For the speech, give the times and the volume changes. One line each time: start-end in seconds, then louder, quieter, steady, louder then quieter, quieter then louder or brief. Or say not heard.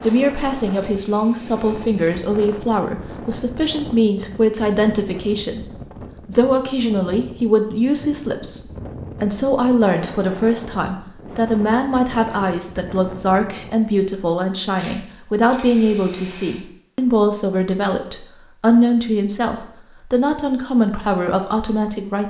0.0-22.2 steady.